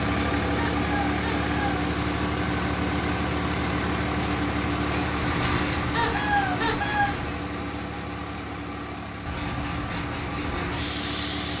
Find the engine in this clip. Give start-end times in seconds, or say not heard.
0.0-11.5.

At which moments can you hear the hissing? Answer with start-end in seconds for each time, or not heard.
4.9-7.3, 9.2-11.5.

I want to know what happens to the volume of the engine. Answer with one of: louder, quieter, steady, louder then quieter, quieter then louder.
quieter.